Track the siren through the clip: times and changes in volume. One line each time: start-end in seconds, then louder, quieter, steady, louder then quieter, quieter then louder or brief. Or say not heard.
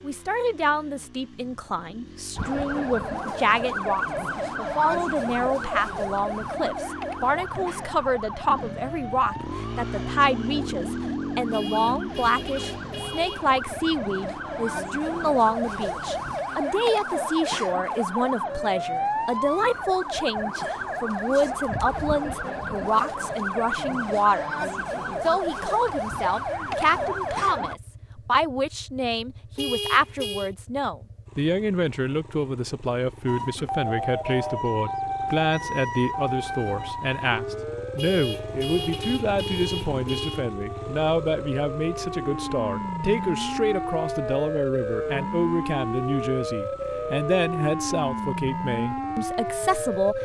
2.4-27.8 quieter then louder
33.2-50.2 quieter then louder.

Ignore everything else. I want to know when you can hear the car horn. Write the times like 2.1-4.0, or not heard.
11.5-13.6, 29.6-30.5, 38.0-40.5.